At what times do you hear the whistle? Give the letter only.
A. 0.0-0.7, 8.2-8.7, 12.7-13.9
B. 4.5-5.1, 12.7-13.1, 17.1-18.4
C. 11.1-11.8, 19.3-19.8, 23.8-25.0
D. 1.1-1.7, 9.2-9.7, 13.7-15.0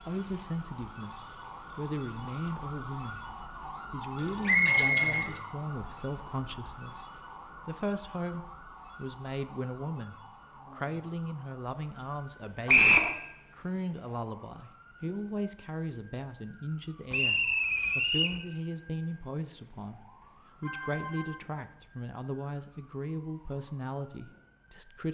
B.